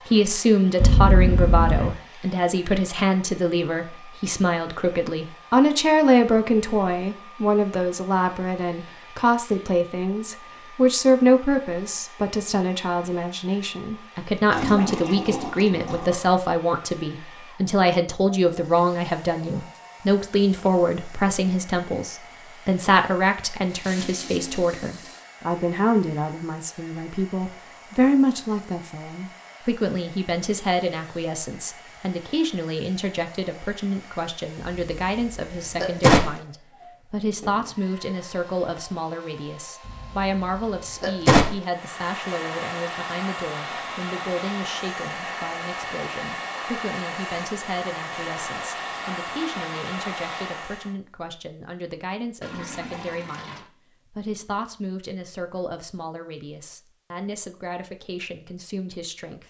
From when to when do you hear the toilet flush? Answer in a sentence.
You can hear the toilet flush from 14.5 to 16.3 s, from 23.7 to 25.2 s and from 52.4 to 53.7 s.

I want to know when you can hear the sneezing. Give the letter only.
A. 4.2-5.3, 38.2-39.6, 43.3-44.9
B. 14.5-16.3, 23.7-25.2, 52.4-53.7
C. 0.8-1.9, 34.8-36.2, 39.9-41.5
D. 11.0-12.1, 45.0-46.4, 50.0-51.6
C.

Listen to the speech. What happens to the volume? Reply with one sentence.
The volume of the speech goes down.